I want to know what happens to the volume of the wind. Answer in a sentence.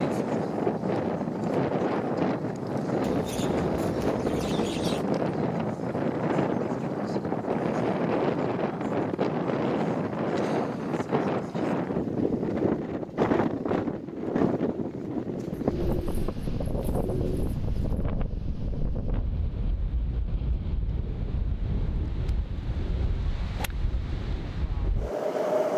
The volume of the wind goes down.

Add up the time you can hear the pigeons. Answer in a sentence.
The pigeons can be heard for 4 seconds in total.